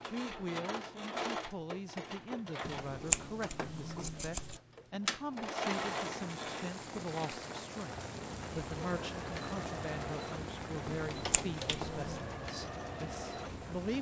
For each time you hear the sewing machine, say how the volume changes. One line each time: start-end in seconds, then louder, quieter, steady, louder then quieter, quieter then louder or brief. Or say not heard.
0.0-13.9 steady.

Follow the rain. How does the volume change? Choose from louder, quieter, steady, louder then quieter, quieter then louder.
quieter.